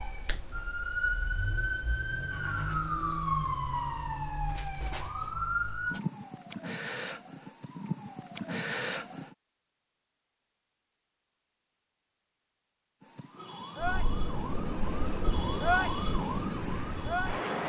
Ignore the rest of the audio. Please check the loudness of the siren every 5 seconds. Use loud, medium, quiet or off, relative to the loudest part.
loud, loud, medium, loud.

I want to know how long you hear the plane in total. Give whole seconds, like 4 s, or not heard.
4 s.